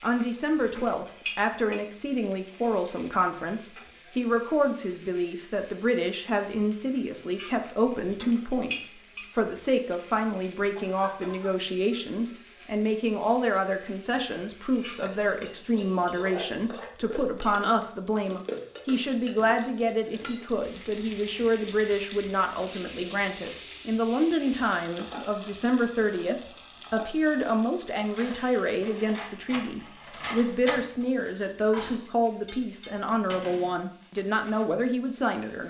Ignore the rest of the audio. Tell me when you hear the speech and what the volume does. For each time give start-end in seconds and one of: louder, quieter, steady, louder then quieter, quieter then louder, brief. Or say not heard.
0.0-35.6 steady.